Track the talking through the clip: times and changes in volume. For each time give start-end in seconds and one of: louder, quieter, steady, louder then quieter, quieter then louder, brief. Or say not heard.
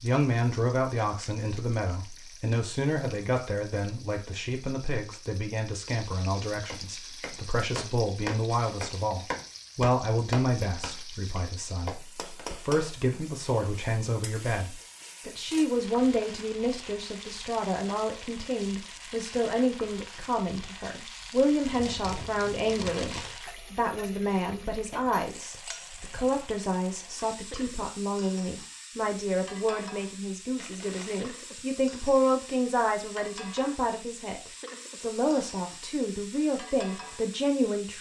0.0-37.9 steady.